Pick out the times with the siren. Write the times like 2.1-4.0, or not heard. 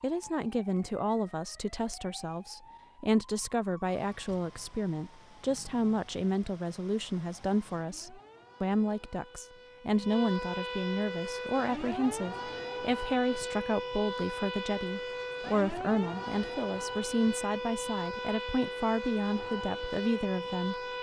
0.0-20.9.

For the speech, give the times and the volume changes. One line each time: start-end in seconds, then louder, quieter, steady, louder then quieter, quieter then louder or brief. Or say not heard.
0.0-20.9 steady.